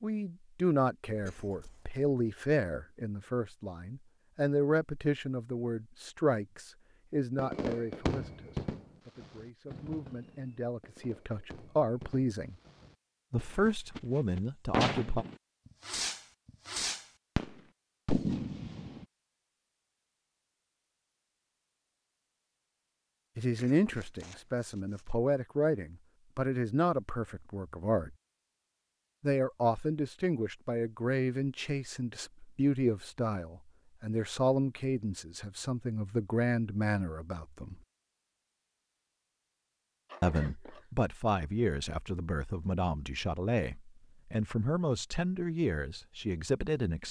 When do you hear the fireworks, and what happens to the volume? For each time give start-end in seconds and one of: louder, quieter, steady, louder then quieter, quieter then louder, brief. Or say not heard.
7.3-19.1 quieter then louder.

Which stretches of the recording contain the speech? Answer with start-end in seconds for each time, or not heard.
0.0-12.6, 13.3-15.2, 23.4-28.1, 29.2-37.8, 40.2-47.0.